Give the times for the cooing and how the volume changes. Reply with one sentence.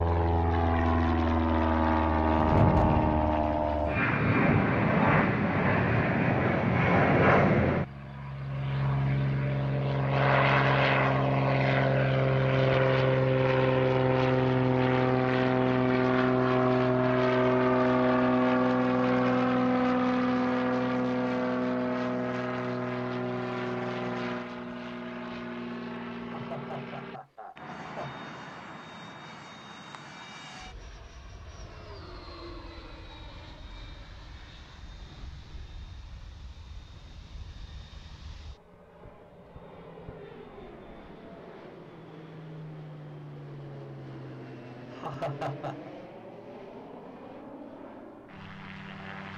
The cooing can't be heard in this clip.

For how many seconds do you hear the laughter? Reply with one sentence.
You can hear the laughter for 4 seconds altogether.